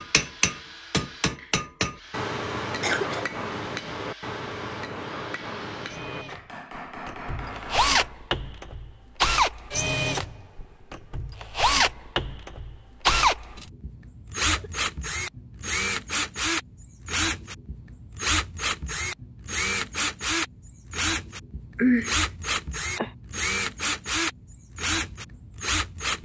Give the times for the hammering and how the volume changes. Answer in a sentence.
You can hear the hammering from 0.0 to 8.2 s, getting quieter.